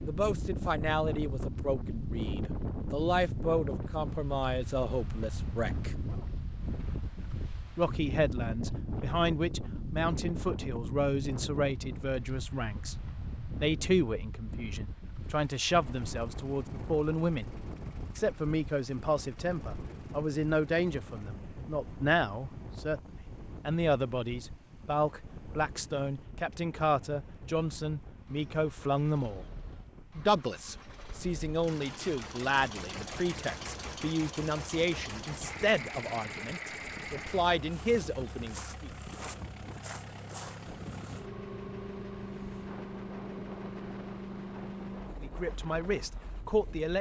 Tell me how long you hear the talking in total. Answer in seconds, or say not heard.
37 s.